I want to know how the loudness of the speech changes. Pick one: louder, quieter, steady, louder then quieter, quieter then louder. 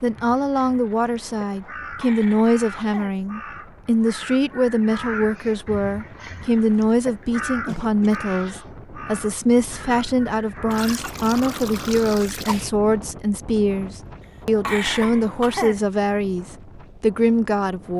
steady.